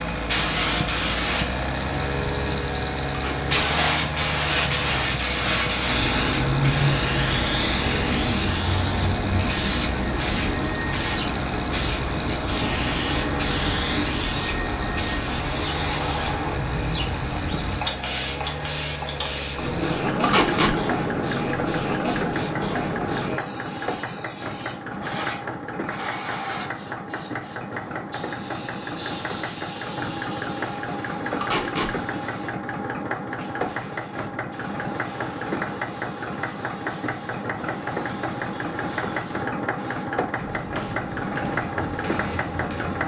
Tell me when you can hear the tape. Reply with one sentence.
You can hear the tape from 3.1 to 3.5 s, from 20.2 to 20.8 s and from 31.4 to 31.9 s.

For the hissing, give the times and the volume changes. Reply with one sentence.
The hissing can be heard from 0.0 to 43.0 s, getting quieter.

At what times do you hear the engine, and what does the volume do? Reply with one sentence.
You can hear the engine from 0.0 to 43.0 s, at a steady volume.